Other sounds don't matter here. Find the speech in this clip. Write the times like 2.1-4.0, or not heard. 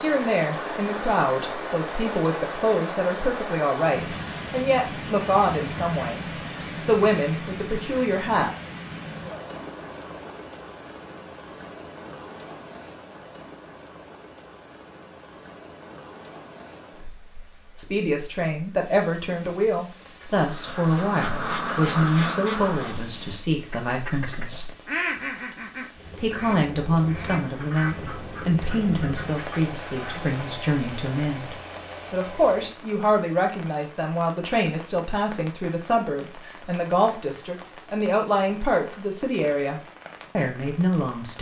0.0-6.2, 6.8-8.5, 17.8-24.7, 26.2-41.3.